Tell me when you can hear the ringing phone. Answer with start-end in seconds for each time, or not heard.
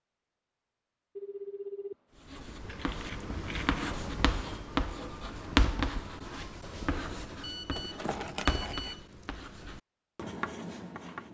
1.1-1.9, 7.4-9.1.